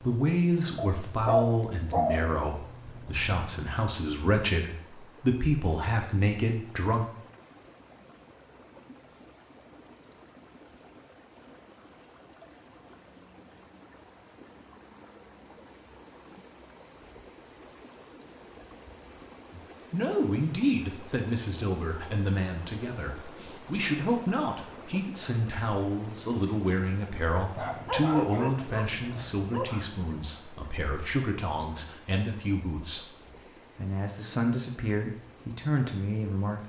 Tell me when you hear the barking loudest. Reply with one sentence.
The loudest moment of the barking is at 1 second.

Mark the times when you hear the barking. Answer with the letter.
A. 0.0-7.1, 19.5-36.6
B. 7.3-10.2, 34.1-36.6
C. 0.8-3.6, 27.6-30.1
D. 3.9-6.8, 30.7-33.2
C.